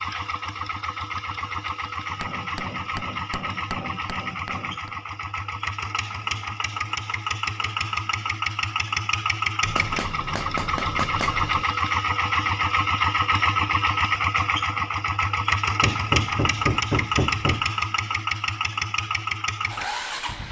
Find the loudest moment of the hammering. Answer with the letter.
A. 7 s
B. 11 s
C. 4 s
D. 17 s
D.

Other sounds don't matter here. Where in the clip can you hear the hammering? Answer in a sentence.
You can hear the hammering from 2.1 to 4.9 s, from 9.7 to 11.7 s and from 15.8 to 17.6 s.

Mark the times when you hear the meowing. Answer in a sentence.
The meowing can't be heard in this clip.